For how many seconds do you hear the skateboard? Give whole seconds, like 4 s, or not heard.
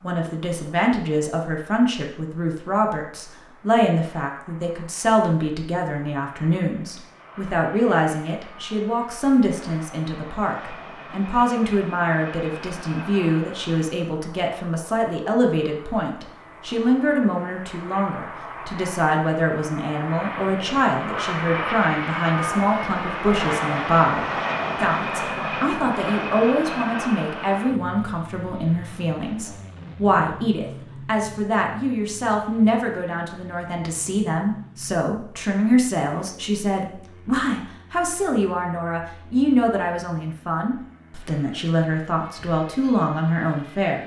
not heard.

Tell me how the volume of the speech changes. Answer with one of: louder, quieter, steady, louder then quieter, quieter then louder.
steady.